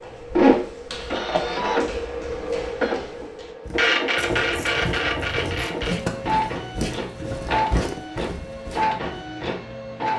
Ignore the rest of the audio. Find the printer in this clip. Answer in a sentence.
The printer can be heard from 0.1 to 10.1 s.